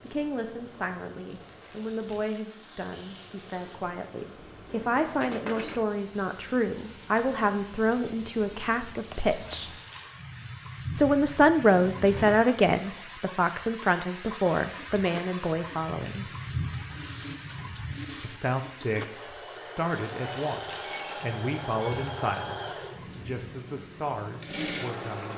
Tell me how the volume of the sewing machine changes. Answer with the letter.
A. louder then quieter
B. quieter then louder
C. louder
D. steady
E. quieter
C.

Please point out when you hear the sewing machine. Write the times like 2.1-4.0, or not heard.
14.8-25.3.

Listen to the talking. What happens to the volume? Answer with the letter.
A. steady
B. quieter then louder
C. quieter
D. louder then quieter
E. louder
D.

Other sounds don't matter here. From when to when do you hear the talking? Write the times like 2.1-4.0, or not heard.
0.0-9.7, 10.9-16.2, 18.2-25.3.